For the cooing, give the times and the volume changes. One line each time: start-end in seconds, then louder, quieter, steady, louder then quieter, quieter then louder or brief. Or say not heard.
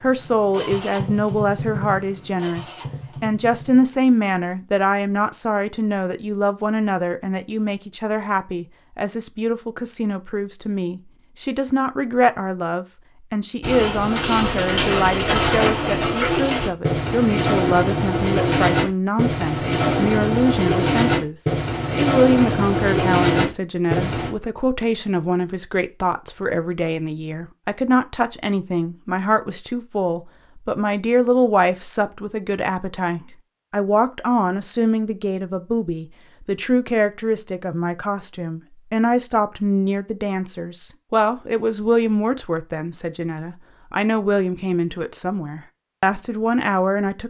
13.6-24.3 steady.